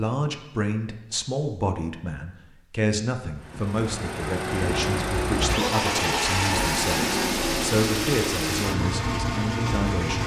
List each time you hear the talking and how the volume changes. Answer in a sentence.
You can hear the talking from 0.0 to 10.2 s, at a steady volume.